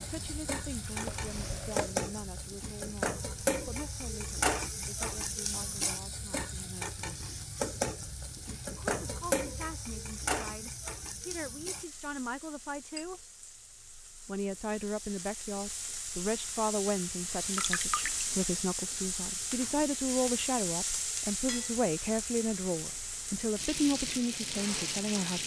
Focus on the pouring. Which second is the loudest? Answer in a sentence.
The loudest moment of the pouring is at 18 seconds.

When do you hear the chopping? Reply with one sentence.
The chopping can be heard from 0.0 to 1.9 s.